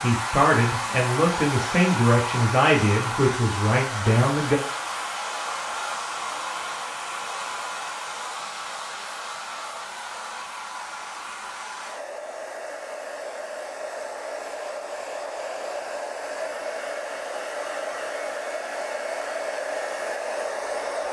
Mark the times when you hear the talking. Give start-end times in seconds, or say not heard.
0.0-4.6.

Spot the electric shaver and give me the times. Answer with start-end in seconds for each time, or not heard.
not heard.